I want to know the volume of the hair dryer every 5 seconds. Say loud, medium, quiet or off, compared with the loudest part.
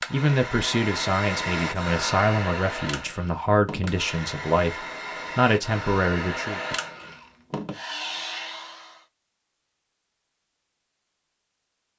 loud, loud, off.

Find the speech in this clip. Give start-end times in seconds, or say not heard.
0.1-6.6.